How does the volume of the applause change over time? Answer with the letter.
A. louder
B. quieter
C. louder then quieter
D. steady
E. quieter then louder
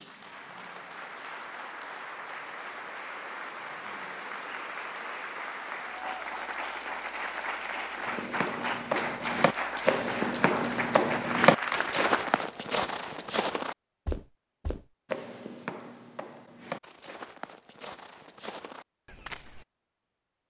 A.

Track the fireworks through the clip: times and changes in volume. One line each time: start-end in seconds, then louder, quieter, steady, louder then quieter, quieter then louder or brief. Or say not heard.
not heard.